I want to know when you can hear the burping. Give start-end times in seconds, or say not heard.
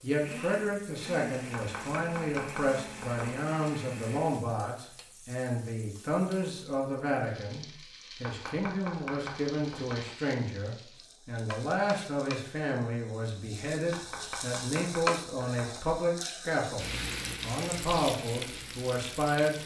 not heard.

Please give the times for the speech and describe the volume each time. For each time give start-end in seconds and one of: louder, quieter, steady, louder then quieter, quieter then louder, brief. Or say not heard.
0.0-19.6 steady.